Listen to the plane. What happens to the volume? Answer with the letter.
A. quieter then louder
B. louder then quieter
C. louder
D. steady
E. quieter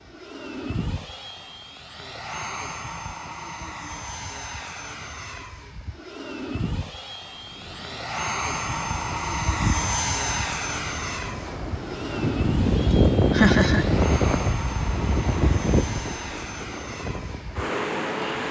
B.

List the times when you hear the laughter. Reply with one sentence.
You can hear the laughter from 12.9 to 13.9 s.